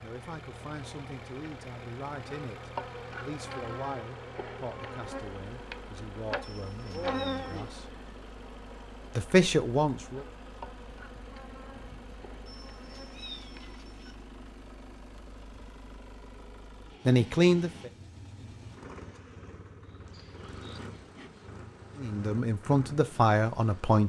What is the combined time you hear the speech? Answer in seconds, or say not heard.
12 s.